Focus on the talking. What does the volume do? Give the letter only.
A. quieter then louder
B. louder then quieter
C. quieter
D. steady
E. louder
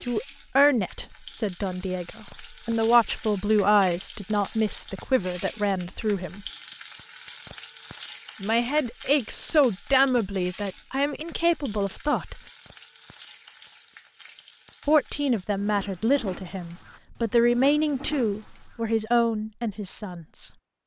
D.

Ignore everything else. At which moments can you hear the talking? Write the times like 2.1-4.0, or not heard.
0.0-6.5, 8.4-12.4, 14.8-20.5.